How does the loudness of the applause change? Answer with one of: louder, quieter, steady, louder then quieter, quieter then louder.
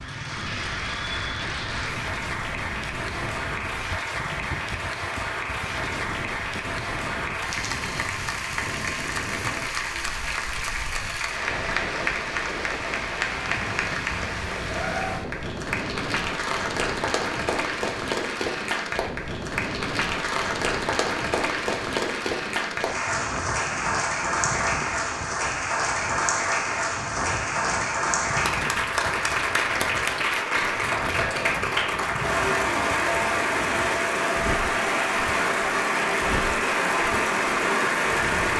louder.